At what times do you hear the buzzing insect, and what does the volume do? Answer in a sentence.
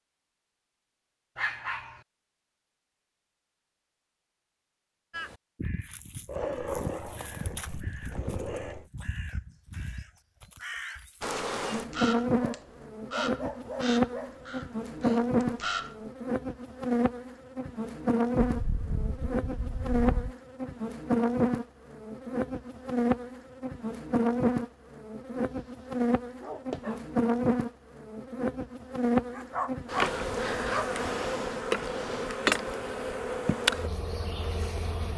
The buzzing insect can be heard from 11.2 to 35.1 s, at a steady volume.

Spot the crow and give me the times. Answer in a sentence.
You can hear the crow from 5.1 to 16.1 s.